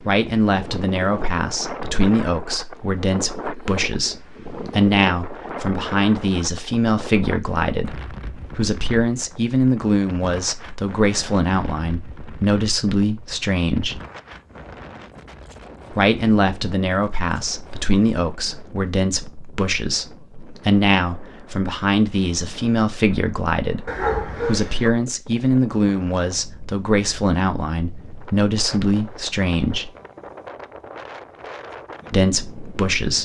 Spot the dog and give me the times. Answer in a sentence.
You can hear the dog from 23.9 to 24.9 s.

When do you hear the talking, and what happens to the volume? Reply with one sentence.
You can hear the talking from 0.0 to 14.0 s, at a steady volume; from 15.9 to 29.9 s, at a steady volume; and briefly from 32.1 to 33.2 s.